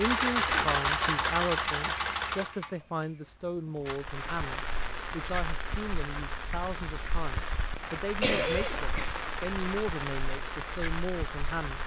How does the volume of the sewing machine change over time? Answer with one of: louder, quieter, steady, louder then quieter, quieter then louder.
quieter.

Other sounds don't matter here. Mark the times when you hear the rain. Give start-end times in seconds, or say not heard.
3.9-11.8.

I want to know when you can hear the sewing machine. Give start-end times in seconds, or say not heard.
0.0-4.0.